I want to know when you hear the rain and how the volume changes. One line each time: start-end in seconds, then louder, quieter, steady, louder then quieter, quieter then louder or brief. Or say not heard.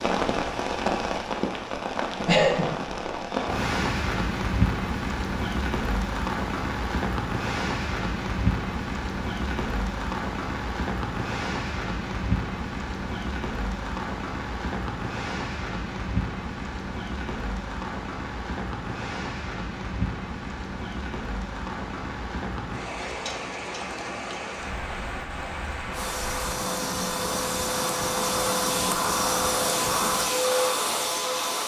0.0-31.6 quieter.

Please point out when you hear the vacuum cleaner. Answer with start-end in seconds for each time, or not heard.
25.9-31.6.